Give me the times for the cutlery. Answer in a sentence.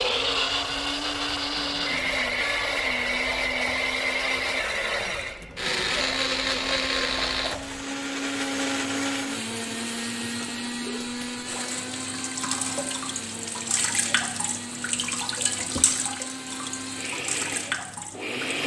The cutlery can't be heard in this clip.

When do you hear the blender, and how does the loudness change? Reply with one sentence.
You can hear the blender from 0.0 to 18.6 s, getting quieter.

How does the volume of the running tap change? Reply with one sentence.
The volume of the running tap goes up.